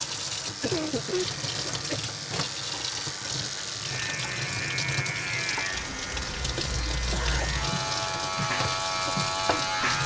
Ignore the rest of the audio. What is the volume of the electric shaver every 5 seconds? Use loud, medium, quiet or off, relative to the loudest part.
medium, loud.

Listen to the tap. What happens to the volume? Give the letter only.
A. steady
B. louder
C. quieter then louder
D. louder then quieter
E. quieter
A.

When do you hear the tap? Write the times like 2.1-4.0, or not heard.
0.0-10.0.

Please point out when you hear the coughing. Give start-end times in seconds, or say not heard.
0.5-2.0, 6.5-7.5.